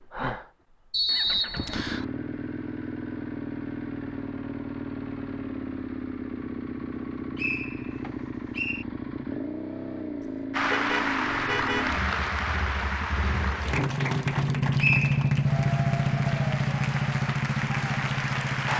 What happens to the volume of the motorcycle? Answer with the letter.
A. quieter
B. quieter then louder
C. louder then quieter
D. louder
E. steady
D.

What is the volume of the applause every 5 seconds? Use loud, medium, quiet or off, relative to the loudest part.
off, off, loud, loud.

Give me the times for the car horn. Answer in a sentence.
The car horn can be heard from 10.7 to 11.8 s.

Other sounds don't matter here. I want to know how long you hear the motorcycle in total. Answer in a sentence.
The motorcycle can be heard for 19 seconds in total.